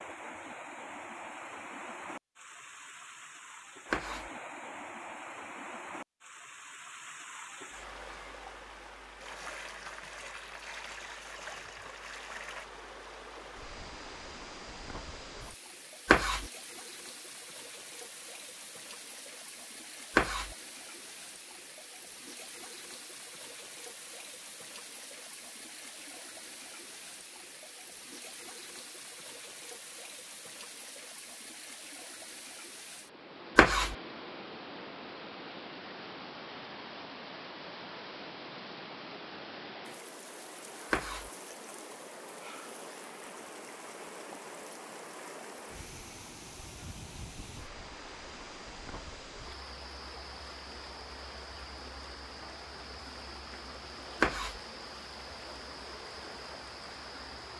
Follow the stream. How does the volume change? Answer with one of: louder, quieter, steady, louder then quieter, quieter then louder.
steady.